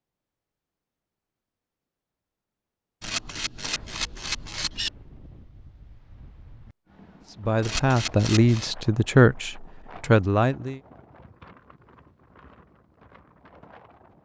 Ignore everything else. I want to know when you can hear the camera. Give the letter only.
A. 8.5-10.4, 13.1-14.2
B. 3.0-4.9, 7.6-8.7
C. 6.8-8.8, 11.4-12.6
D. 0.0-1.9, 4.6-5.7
B.